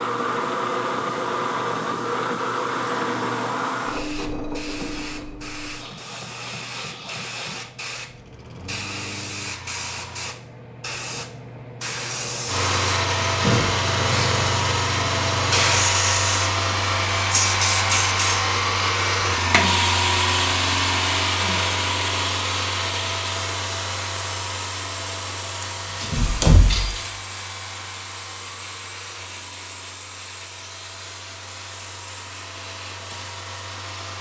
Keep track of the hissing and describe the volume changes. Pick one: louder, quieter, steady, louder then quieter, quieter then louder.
louder then quieter.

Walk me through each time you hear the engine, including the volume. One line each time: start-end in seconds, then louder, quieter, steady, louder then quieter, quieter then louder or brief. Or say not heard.
0.0-10.3 quieter
12.4-34.1 quieter.